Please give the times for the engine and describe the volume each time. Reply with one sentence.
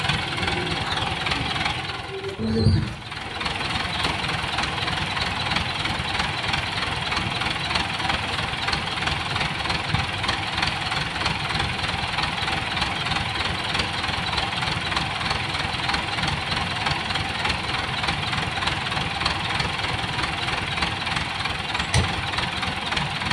You can hear the engine from 0.0 to 23.2 s, at a steady volume.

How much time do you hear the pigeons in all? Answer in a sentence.
You can hear the pigeons for 3 seconds altogether.